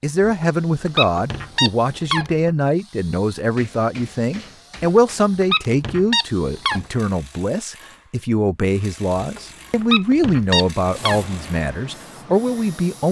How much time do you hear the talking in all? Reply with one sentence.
The talking can be heard for 13 seconds in total.